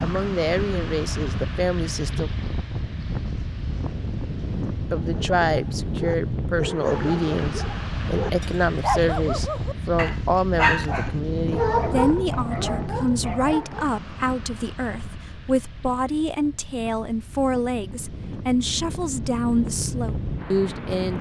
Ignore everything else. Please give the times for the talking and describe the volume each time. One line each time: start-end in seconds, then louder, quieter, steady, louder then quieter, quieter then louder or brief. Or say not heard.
0.0-2.3 brief
4.9-21.1 steady.